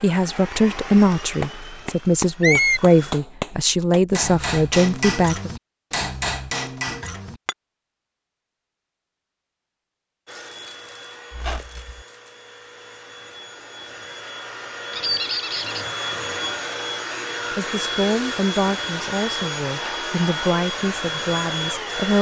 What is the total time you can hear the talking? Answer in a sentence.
The talking can be heard for 10 seconds in total.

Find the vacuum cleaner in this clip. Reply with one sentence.
You can hear the vacuum cleaner from 0.0 to 3.2 s and from 10.2 to 22.1 s.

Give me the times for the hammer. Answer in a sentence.
You can hear the hammer from 0.5 to 7.5 s.